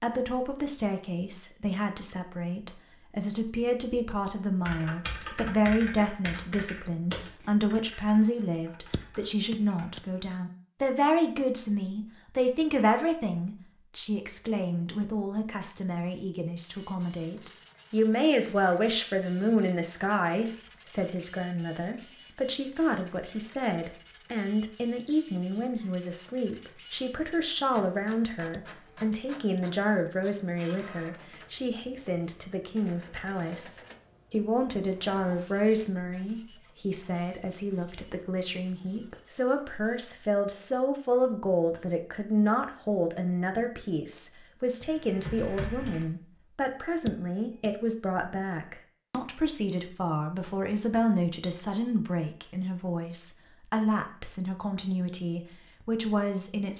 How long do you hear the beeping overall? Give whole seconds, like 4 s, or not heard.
3 s.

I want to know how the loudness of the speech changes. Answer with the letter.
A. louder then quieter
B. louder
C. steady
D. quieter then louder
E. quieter
C.